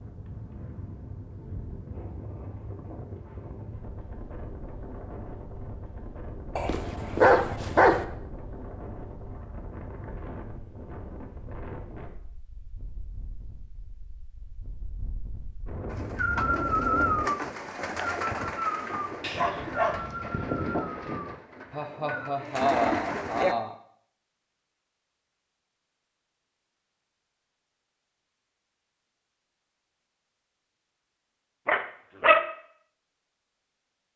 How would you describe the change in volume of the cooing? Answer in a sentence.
The loudness of the cooing goes down, then up.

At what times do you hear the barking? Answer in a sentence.
You can hear the barking from 6.5 to 8.1 s, from 19.2 to 21.2 s and from 31.6 to 32.5 s.